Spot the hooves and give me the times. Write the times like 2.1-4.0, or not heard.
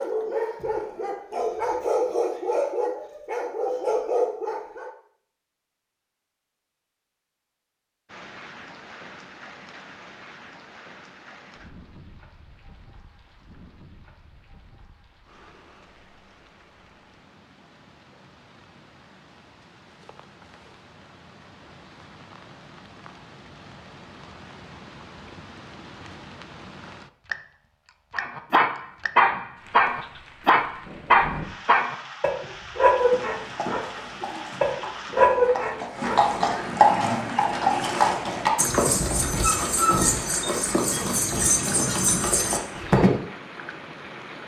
32.4-43.1.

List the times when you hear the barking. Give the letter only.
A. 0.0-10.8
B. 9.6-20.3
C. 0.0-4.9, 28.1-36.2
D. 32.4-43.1
C.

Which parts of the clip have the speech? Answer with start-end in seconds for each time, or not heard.
not heard.